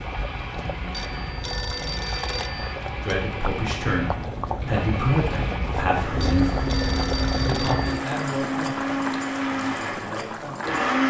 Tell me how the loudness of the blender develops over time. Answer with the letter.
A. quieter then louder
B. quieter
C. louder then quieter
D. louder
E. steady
D.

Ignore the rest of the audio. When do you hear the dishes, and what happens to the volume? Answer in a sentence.
The dishes can't be heard in this clip.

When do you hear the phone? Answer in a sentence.
You can hear the phone from 0.9 to 2.8 s and from 6.2 to 8.0 s.